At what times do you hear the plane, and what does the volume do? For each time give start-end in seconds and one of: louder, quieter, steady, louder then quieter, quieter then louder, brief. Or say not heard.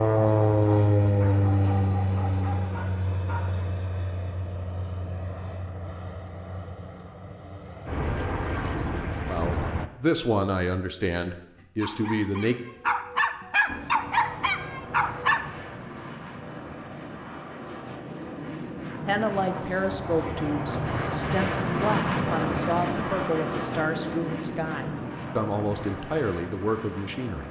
0.0-9.8 quieter then louder
13.7-27.4 louder then quieter.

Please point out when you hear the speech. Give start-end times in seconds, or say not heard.
9.2-12.6, 19.1-27.4.